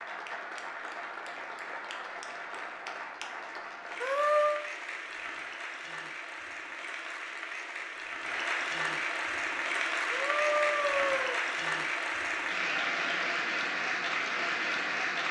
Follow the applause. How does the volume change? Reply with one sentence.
The volume of the applause goes up.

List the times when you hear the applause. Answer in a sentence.
You can hear the applause from 0.0 to 15.2 s.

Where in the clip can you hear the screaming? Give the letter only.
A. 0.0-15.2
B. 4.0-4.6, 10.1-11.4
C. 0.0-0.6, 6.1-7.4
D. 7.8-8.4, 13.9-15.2
B.